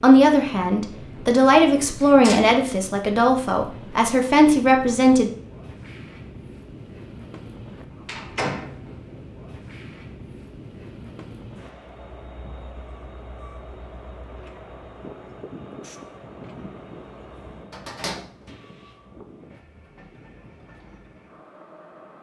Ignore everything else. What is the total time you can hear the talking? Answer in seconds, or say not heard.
5 s.